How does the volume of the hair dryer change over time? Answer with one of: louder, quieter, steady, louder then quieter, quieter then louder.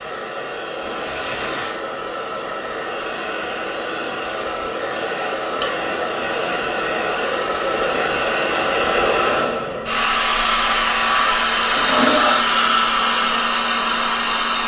louder.